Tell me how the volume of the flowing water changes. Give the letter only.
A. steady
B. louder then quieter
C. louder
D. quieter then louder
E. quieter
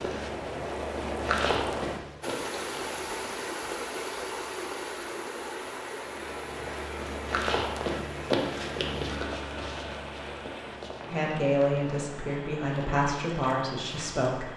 E.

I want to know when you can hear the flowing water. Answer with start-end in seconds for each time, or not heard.
0.0-14.5.